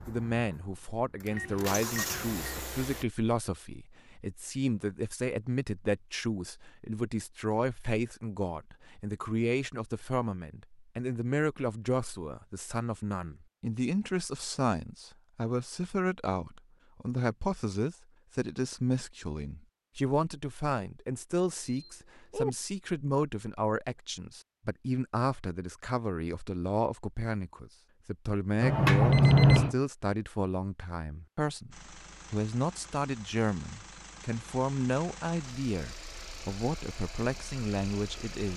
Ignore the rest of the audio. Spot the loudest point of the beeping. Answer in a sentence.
The loudest moment of the beeping is at 29 seconds.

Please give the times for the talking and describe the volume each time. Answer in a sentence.
You can hear the talking from 0.1 to 38.5 s, at a steady volume.